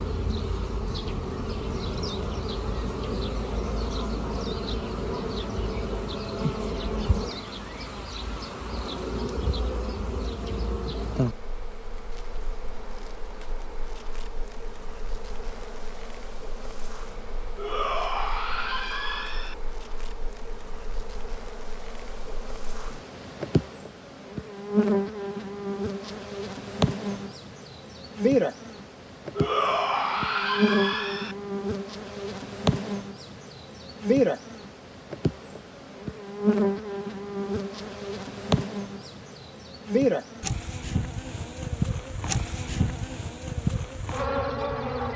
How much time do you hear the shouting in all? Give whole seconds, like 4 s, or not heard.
4 s.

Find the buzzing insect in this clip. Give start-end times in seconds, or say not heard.
0.0-45.1.